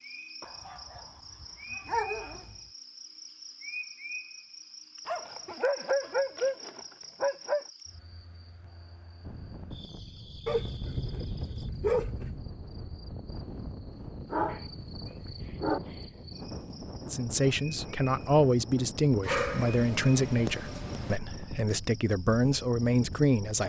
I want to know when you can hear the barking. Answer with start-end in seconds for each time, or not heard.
0.4-2.6, 5.0-7.7, 10.4-12.4, 14.3-15.8, 19.2-21.2.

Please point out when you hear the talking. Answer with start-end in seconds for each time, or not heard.
17.1-23.6.